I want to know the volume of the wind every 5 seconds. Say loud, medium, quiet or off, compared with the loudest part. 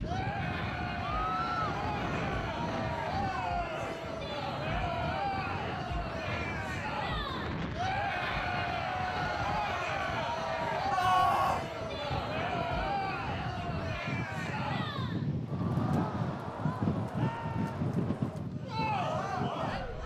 medium, medium, medium, loud.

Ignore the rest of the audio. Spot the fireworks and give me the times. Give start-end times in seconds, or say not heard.
not heard.